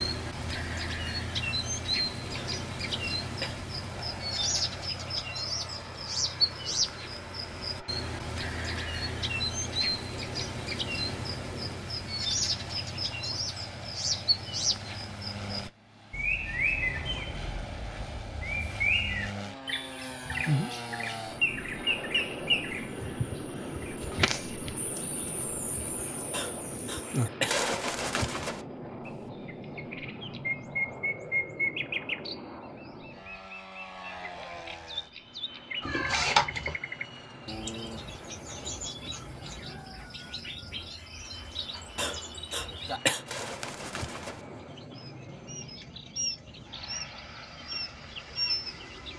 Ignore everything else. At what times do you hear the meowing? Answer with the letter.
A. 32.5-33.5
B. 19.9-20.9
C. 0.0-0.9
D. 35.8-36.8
D.